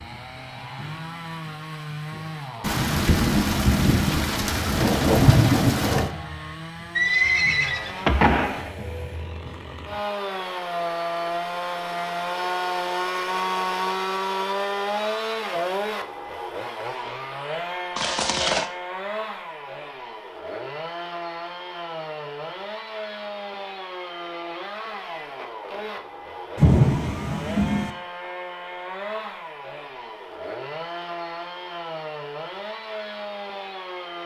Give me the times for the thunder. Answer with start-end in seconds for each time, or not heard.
2.6-6.1, 26.6-27.9.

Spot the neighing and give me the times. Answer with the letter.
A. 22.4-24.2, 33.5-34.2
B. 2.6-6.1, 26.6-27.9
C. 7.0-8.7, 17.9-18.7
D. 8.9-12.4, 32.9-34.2
C.